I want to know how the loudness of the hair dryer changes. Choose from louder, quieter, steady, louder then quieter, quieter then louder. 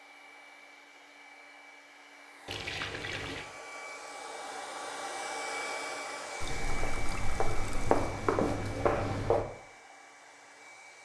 louder then quieter.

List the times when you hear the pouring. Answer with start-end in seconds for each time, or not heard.
2.5-3.5, 6.4-8.1.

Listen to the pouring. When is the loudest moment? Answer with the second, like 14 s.
3 s.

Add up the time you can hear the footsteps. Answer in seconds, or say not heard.
3 s.